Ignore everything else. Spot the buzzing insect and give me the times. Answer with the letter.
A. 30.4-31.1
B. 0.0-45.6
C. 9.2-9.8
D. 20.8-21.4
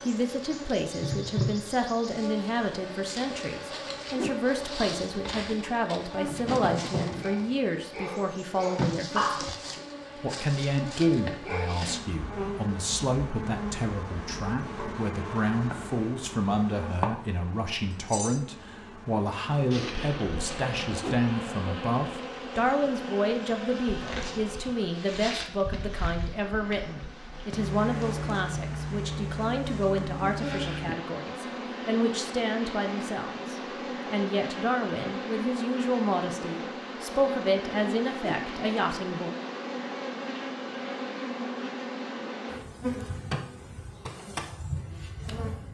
B.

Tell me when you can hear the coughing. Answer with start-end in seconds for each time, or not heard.
9.2-9.8.